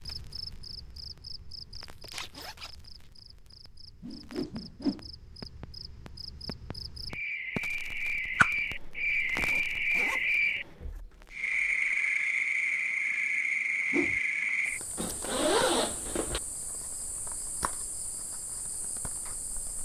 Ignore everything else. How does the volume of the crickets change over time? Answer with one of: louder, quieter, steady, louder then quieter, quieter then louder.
louder then quieter.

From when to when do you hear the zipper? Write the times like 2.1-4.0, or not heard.
2.0-2.7, 9.2-11.0, 14.9-16.4.